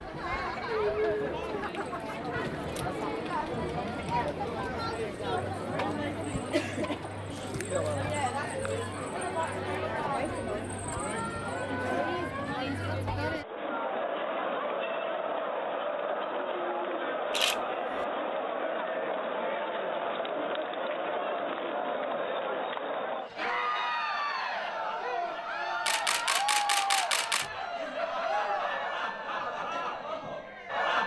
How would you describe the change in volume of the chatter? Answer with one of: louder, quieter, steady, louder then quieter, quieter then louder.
steady.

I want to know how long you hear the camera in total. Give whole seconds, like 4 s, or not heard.
3 s.